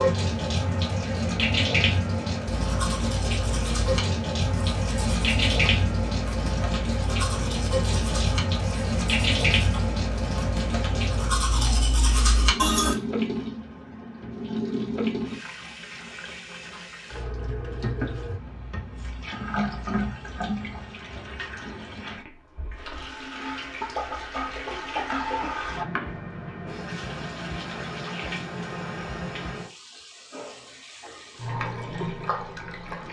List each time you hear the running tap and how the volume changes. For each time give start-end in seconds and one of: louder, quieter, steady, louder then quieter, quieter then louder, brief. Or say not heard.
0.0-33.0 quieter.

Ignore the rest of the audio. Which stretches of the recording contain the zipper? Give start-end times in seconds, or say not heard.
not heard.